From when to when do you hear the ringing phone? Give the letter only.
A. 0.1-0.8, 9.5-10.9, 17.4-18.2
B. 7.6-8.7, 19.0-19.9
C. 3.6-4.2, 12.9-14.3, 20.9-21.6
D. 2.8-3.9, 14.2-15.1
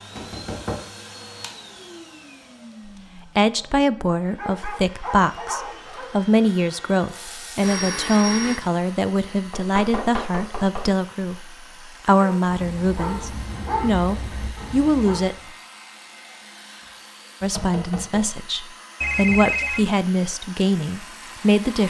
B.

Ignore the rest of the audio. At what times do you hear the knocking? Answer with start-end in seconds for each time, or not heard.
0.1-0.8, 9.5-10.9, 17.4-18.2.